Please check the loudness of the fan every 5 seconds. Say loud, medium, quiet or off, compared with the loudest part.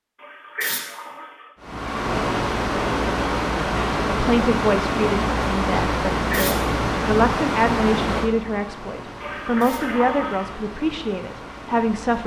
loud, loud, quiet.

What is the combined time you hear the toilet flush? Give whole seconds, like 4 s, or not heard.
3 s.